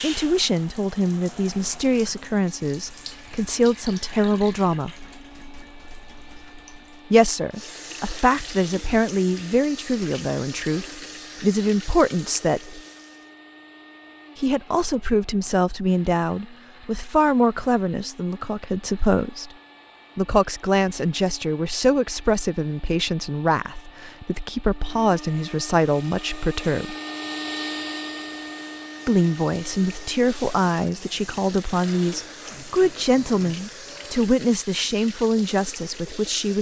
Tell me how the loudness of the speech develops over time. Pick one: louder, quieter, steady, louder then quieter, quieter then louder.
steady.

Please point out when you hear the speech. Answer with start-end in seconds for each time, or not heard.
0.0-4.9, 7.1-12.8, 14.3-19.5, 20.1-26.9, 29.1-36.5.